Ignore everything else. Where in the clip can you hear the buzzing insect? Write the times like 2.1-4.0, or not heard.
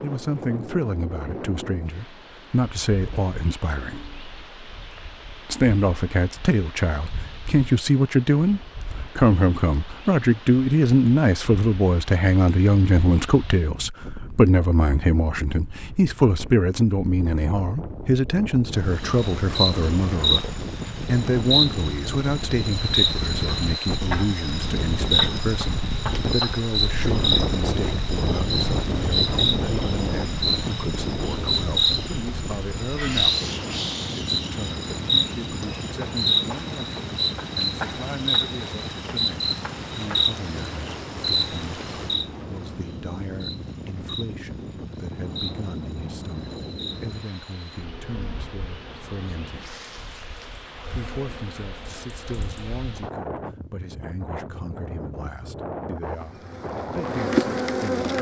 18.9-53.0, 56.1-58.1.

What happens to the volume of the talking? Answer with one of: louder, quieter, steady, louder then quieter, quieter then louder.
quieter.